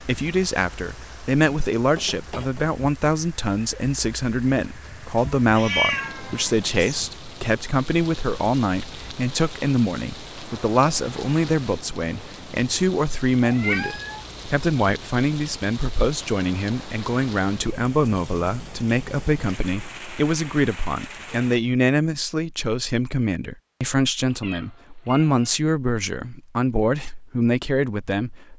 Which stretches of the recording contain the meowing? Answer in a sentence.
You can hear the meowing from 5.2 to 7.0 s, from 13.4 to 14.2 s and from 24.2 to 25.6 s.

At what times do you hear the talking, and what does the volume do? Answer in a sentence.
The talking can be heard from 0.0 to 28.5 s, at a steady volume.